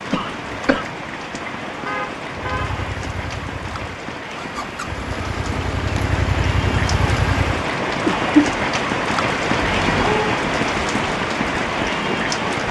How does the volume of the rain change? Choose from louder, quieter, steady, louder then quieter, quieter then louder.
louder.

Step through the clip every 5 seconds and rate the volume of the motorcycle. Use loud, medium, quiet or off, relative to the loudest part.
medium, loud, off.